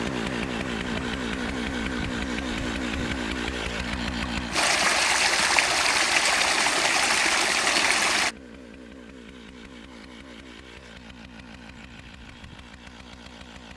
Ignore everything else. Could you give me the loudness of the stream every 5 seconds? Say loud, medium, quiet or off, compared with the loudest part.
medium, loud, off.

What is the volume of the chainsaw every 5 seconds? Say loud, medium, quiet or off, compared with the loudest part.
loud, quiet, quiet.